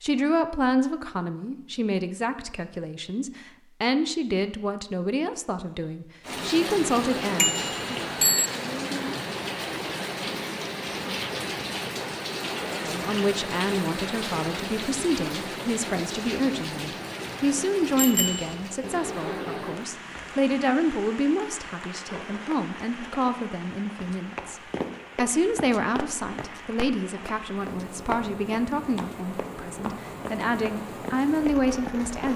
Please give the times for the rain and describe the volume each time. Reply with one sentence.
The rain can be heard from 6.2 to 32.3 s, getting quieter.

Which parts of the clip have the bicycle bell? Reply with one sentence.
The bicycle bell can be heard from 7.3 to 8.5 s and from 17.9 to 18.6 s.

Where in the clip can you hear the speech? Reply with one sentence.
You can hear the speech from 0.0 to 8.0 s and from 12.8 to 32.3 s.